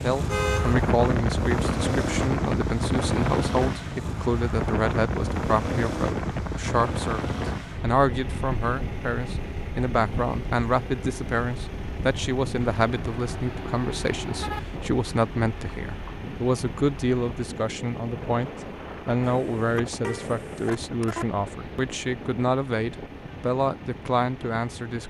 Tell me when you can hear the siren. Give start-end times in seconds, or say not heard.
not heard.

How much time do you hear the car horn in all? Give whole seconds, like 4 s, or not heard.
5 s.